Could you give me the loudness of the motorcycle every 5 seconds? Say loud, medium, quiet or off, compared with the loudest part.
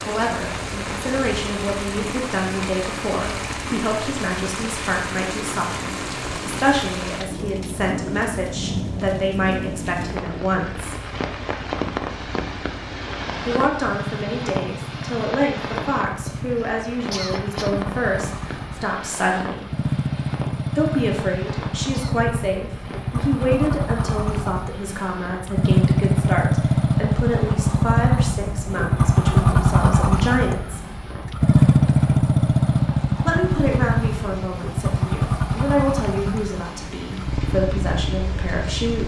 quiet, quiet, quiet, quiet, medium, loud, loud, medium.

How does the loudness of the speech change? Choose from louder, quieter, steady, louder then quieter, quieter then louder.
steady.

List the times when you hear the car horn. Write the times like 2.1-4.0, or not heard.
not heard.